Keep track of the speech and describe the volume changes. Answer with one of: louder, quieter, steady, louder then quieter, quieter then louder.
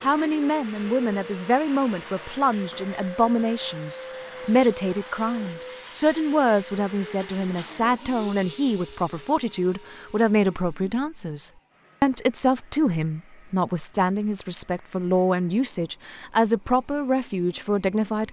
steady.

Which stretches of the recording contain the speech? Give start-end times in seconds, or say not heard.
0.0-18.2.